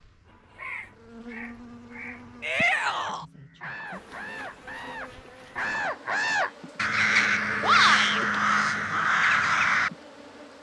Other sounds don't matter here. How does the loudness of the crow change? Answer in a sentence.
The volume of the crow goes up.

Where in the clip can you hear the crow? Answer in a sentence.
The crow can be heard from 0.2 to 9.9 s.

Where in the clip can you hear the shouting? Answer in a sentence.
You can hear the shouting from 2.4 to 3.2 s and from 7.6 to 8.2 s.